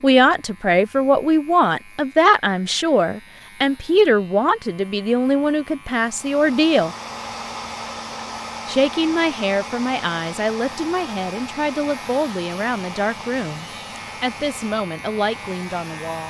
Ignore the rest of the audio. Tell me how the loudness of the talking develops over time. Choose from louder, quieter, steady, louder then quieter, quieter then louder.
quieter.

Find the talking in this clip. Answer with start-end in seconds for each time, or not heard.
0.0-7.0, 8.7-16.2.